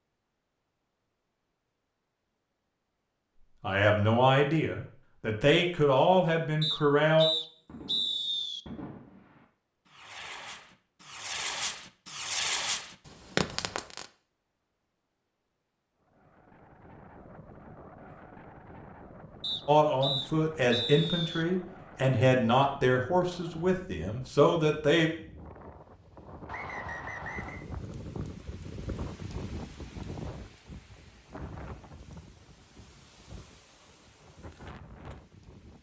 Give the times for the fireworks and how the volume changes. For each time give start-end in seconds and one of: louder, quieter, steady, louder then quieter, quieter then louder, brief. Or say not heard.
7.7-14.1 louder.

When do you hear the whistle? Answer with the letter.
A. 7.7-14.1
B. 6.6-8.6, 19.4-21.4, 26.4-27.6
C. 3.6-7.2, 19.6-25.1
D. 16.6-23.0
B.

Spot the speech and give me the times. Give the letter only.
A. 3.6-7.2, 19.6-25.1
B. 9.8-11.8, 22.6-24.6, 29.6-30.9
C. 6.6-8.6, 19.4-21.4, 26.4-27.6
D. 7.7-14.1
A.